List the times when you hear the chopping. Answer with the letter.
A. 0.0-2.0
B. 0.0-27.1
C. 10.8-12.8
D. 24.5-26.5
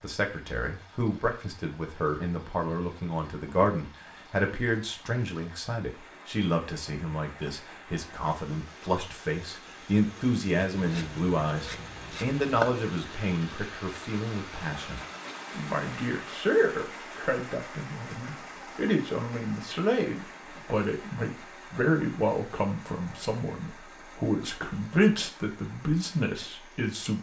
C.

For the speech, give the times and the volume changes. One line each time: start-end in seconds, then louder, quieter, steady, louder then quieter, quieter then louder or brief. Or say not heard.
0.0-27.1 steady.